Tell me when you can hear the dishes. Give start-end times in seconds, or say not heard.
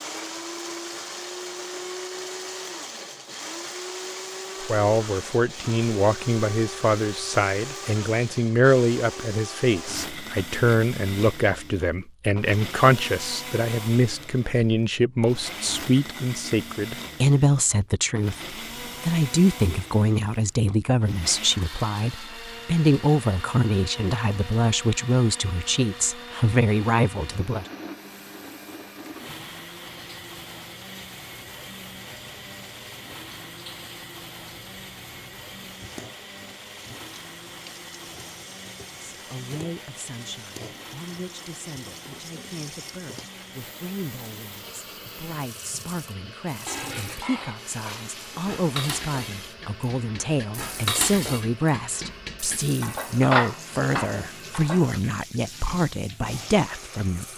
46.6-55.0.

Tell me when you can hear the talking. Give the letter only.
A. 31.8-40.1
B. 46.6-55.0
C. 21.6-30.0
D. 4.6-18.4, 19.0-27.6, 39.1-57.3
D.